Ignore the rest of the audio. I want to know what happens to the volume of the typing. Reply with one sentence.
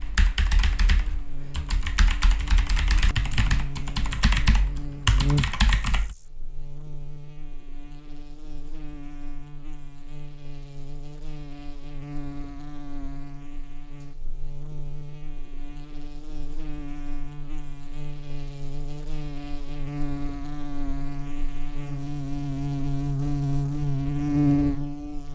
The volume of the typing goes up.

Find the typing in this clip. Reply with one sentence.
The typing can be heard from 0.0 to 6.2 s.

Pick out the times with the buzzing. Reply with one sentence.
The buzzing can be heard from 0.0 to 25.3 s.